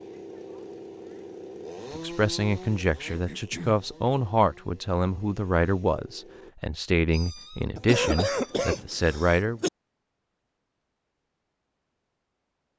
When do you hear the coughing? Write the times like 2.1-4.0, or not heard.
3.0-3.9, 7.8-9.7.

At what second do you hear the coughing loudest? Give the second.
8 s.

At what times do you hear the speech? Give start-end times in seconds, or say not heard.
1.9-9.6.